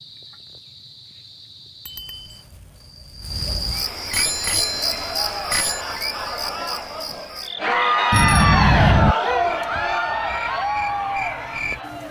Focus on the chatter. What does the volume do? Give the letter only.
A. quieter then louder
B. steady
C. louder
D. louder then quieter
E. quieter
D.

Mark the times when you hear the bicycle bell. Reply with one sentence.
The bicycle bell can be heard from 1.9 to 2.3 s, from 4.1 to 5.8 s and from 8.1 to 9.2 s.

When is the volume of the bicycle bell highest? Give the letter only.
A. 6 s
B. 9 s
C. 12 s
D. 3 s
B.